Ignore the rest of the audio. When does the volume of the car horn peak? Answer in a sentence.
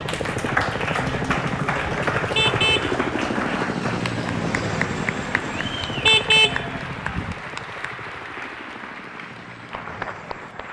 The loudest moment of the car horn is at 6 seconds.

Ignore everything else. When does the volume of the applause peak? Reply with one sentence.
The loudest moment of the applause is at 1 second.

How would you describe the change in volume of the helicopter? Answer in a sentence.
The loudness of the helicopter goes down.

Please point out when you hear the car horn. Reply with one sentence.
You can hear the car horn from 2.1 to 3.0 s and from 5.8 to 7.3 s.